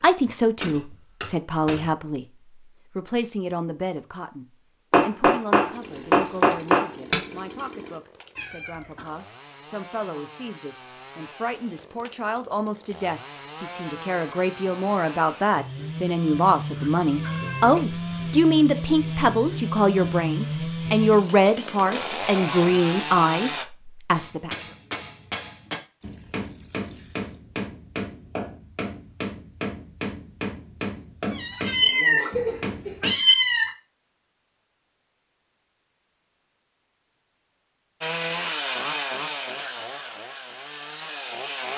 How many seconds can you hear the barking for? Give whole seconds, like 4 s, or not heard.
not heard.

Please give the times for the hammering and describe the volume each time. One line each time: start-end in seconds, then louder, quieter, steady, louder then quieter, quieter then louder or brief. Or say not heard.
0.0-1.9 brief
4.9-7.2 brief
24.1-33.1 steady.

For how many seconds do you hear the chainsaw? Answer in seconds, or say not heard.
22 s.